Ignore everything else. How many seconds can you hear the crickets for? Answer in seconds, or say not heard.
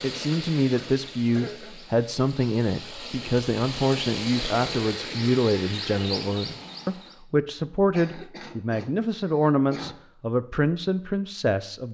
not heard.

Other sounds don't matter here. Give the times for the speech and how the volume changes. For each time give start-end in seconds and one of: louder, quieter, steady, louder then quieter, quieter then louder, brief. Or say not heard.
0.0-11.8 steady.